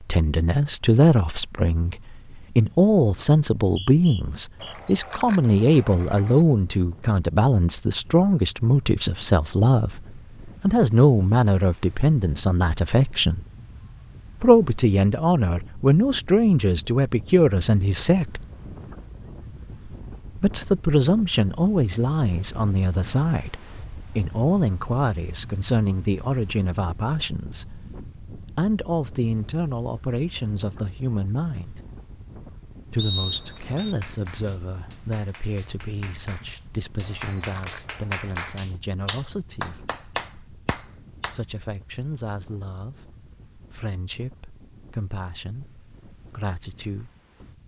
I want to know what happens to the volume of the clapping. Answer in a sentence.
The loudness of the clapping goes up.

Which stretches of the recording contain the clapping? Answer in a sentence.
You can hear the clapping from 33.5 to 41.4 s.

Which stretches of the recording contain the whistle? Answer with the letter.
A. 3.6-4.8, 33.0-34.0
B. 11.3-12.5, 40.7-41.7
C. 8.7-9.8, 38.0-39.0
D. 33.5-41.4
A.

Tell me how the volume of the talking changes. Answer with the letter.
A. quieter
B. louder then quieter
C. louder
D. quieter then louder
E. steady
A.